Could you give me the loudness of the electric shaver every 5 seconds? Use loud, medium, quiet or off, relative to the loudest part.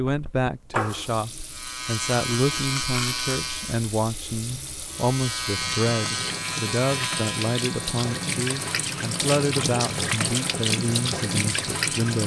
loud, loud, medium.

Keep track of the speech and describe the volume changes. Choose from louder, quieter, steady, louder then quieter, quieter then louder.
steady.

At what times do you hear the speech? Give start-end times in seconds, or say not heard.
0.0-12.2.